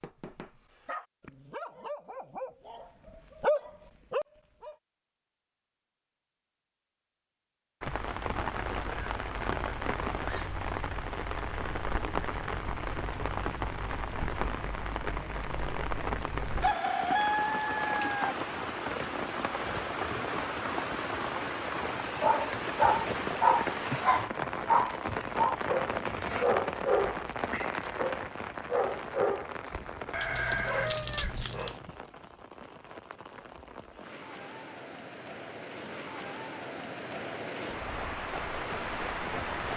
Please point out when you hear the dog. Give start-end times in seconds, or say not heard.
0.0-4.8, 22.2-31.8.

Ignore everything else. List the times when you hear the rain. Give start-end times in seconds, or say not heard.
7.8-39.7.